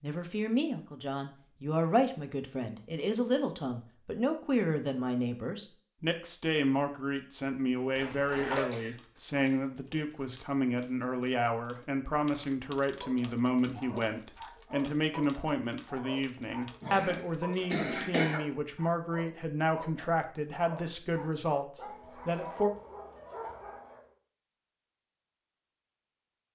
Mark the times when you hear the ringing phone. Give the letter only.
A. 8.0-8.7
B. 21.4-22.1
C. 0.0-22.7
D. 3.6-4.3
A.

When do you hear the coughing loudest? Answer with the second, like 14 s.
18 s.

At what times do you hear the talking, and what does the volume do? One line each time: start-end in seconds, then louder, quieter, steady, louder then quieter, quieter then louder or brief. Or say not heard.
0.0-22.7 steady.